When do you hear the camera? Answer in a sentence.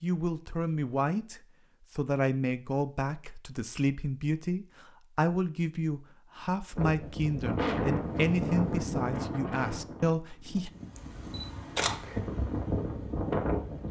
The camera can be heard from 10.9 to 12.2 s.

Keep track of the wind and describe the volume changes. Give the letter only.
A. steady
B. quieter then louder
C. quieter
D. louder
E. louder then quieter
B.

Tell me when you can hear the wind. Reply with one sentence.
The wind can be heard from 6.8 to 13.8 s.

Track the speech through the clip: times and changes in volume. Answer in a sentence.
The speech can be heard from 0.0 to 10.7 s, at a steady volume.